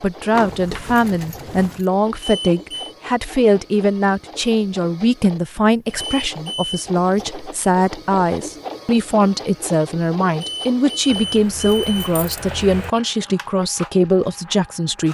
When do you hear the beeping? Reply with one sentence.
The beeping can be heard from 2.1 to 3.0 s, from 5.9 to 6.8 s and from 10.3 to 12.2 s.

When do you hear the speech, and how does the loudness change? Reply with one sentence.
The speech can be heard from 0.0 to 15.0 s, at a steady volume.